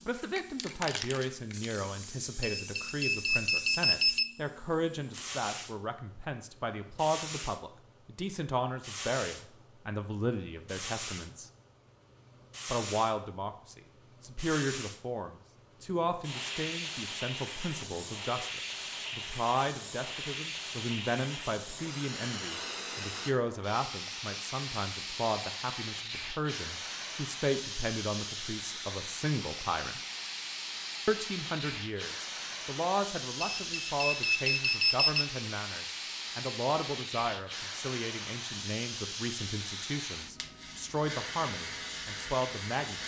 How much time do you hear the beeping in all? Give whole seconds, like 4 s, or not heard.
4 s.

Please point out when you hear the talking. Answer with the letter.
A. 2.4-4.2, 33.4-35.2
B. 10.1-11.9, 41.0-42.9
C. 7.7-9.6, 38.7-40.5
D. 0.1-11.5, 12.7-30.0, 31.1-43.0
D.